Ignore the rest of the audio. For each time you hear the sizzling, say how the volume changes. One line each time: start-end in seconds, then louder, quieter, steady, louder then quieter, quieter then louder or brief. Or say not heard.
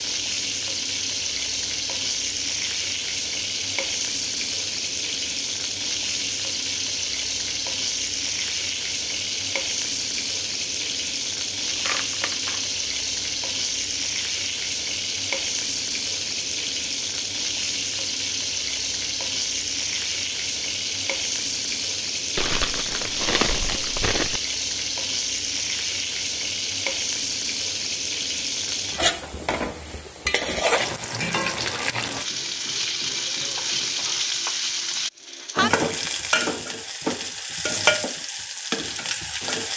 0.0-39.7 steady.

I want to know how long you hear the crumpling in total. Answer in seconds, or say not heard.
3 s.